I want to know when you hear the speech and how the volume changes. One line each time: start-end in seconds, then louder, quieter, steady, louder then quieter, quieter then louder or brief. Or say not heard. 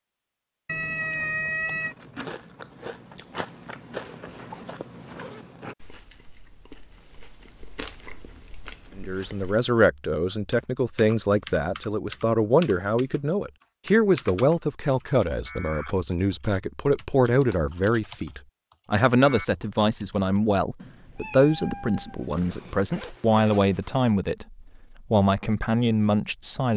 8.9-26.7 steady.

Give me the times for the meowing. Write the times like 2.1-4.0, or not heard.
0.7-1.9, 20.8-22.8.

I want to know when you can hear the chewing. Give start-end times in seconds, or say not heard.
1.8-9.7.